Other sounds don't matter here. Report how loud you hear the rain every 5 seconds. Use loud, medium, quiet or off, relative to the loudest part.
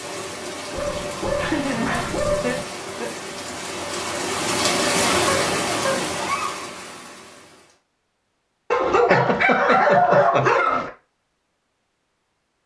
loud, loud, off.